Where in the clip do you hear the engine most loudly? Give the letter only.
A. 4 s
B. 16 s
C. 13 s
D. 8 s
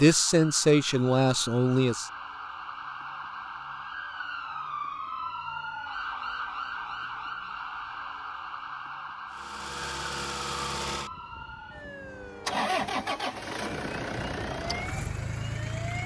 C.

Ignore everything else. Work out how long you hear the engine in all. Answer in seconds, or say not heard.
7 s.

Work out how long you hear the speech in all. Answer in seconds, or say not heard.
2 s.